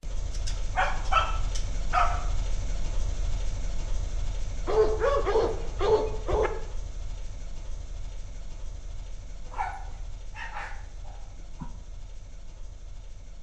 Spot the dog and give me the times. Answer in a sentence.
The dog can be heard from 0.3 to 2.2 s, from 4.7 to 6.5 s and from 9.5 to 11.7 s.